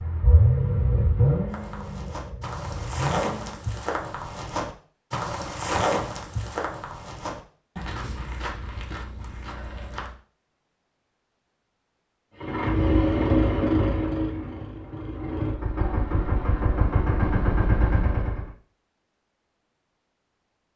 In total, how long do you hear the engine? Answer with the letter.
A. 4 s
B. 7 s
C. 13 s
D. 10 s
D.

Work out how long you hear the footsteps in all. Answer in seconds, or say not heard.
9 s.